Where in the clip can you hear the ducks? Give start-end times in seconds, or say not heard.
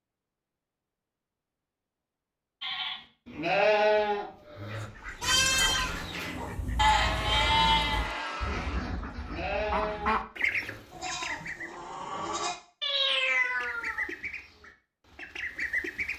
4.7-11.8, 13.4-16.1.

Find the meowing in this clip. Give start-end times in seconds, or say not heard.
12.8-14.1.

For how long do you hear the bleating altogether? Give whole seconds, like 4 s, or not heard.
10 s.